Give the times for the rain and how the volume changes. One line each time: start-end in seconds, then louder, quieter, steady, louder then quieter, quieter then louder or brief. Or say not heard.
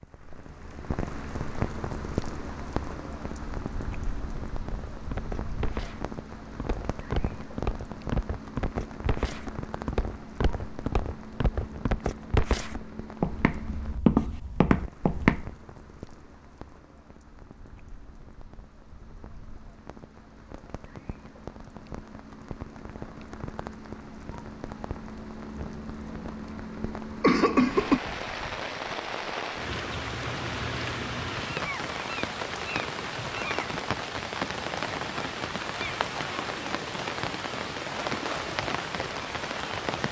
0.0-40.0 quieter then louder.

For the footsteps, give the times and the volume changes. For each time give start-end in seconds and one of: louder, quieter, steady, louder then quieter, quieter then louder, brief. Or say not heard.
4.7-15.6 louder.